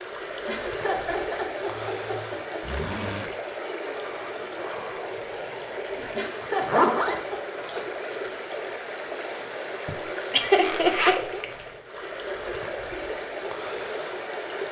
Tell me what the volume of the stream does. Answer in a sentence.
The loudness of the stream stays about the same.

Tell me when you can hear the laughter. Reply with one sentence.
You can hear the laughter from 0.5 to 2.8 s, from 6.2 to 7.4 s and from 9.8 to 11.4 s.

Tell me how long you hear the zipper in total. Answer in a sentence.
The zipper can be heard for 3 seconds in total.